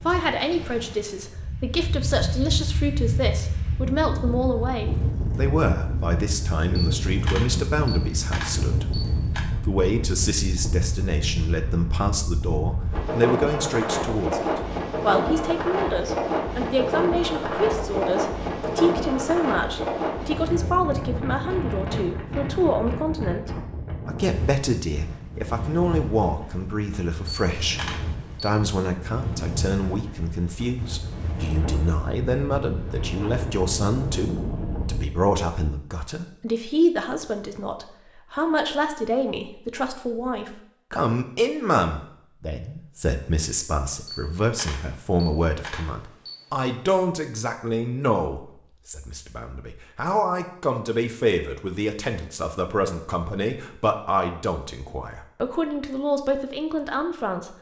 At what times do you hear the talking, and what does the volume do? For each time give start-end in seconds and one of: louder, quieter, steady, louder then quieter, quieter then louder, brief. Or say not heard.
0.1-9.0 steady
9.6-57.5 steady.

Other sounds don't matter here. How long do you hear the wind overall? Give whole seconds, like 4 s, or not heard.
35 s.